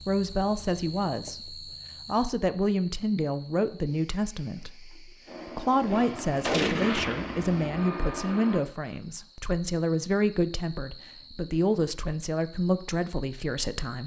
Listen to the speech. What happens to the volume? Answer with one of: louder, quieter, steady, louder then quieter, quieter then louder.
steady.